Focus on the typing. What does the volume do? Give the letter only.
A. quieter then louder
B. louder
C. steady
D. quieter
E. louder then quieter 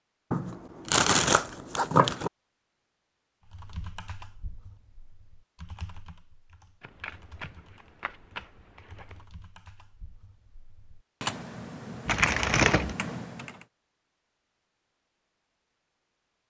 A.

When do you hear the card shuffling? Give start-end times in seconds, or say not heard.
0.3-2.3, 6.8-9.2, 12.1-12.9.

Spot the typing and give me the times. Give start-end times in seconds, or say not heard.
3.5-13.7.